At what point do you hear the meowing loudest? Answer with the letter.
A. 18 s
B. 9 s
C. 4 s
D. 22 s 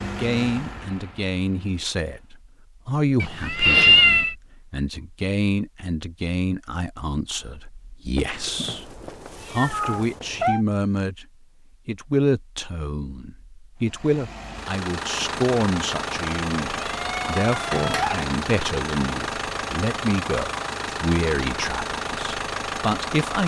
C.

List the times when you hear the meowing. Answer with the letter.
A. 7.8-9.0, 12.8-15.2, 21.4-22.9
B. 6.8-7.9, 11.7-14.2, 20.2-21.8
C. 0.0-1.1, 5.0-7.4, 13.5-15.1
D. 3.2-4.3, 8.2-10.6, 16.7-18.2
D.